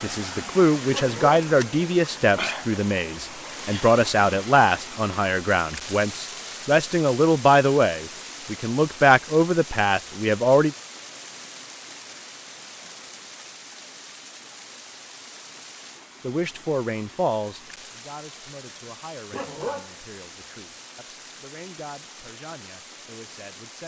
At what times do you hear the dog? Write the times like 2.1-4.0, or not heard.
0.9-1.4, 19.3-19.9.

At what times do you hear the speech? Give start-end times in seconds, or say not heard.
0.0-10.8, 16.2-23.8.